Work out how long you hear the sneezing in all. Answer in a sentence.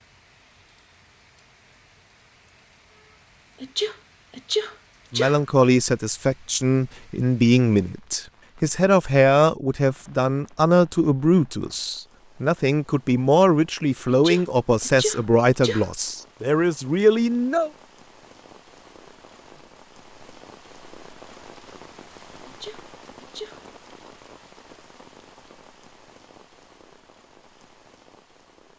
The sneezing can be heard for 5 seconds in total.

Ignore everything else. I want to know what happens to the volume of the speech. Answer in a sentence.
The loudness of the speech stays about the same.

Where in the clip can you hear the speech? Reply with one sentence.
The speech can be heard from 5.1 to 17.7 s.